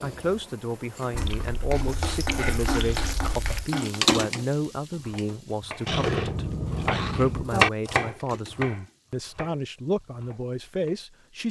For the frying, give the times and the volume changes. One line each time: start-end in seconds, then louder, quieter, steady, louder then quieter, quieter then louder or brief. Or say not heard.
0.0-11.4 louder then quieter.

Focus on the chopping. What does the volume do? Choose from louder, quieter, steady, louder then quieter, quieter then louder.
louder then quieter.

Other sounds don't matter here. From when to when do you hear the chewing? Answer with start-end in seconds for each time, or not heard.
1.1-3.6, 5.8-7.5.